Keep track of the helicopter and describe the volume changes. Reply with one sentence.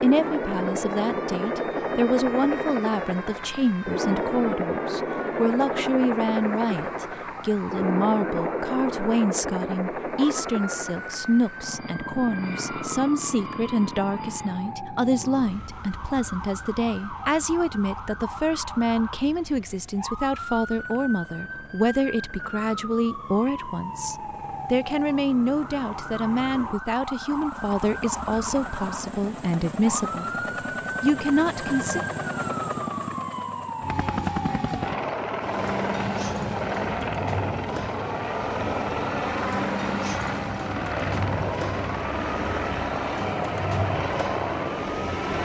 The volume of the helicopter goes down, then up.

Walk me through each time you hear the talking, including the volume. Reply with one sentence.
You can hear the talking from 0.0 to 30.2 s, at a steady volume; and briefly from 31.0 to 32.0 s.